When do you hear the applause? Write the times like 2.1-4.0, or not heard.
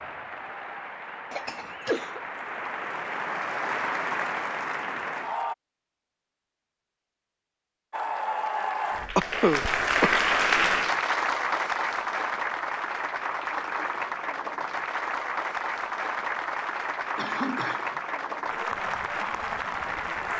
0.0-5.5, 7.9-20.3.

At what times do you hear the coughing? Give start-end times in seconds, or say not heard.
1.3-2.2, 9.2-10.2, 17.1-18.0.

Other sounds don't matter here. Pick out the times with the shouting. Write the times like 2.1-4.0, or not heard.
not heard.